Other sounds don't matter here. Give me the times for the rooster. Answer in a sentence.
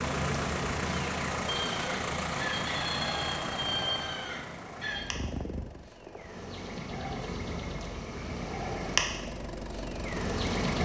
You can hear the rooster from 1.5 to 5.2 s.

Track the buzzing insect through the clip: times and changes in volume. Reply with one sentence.
The buzzing insect can be heard from 0.0 to 10.8 s, getting quieter then louder.